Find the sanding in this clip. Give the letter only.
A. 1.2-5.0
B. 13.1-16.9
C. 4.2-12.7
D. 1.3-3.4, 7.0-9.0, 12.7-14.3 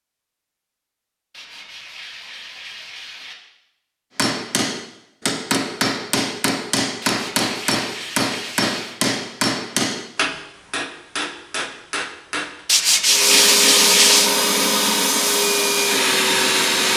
D.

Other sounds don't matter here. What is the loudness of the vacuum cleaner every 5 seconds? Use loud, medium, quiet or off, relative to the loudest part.
off, off, loud, loud.